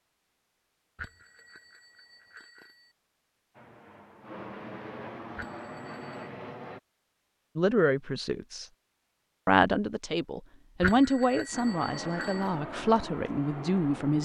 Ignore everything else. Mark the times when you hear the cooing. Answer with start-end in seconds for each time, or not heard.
not heard.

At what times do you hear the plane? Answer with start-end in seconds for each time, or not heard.
3.5-6.8, 11.5-14.2.